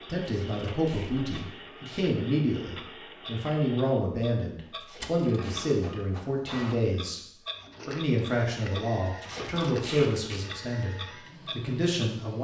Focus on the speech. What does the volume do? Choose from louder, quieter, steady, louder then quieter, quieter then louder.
steady.